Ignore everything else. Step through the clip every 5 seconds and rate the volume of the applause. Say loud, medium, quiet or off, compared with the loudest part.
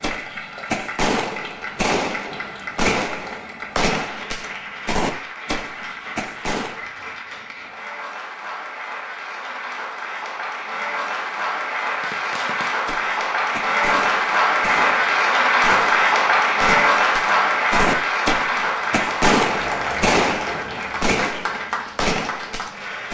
quiet, quiet, loud, loud, medium.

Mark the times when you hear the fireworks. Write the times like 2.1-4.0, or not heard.
0.0-6.8, 12.0-23.0.